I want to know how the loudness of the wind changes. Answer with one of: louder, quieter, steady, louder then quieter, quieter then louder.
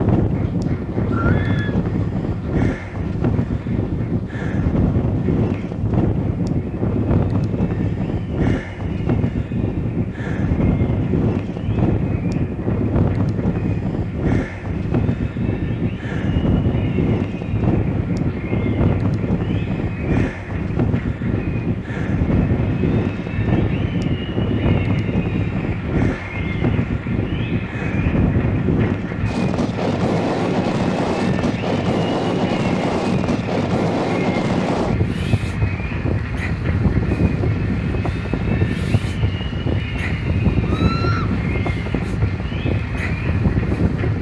steady.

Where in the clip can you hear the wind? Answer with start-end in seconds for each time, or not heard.
0.0-44.1.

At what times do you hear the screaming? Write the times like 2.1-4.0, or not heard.
1.1-1.8, 40.6-41.4.